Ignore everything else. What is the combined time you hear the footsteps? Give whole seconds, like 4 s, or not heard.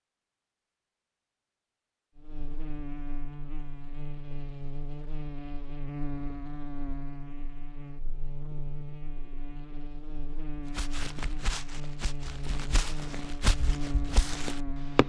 4 s.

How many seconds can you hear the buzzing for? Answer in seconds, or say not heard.
13 s.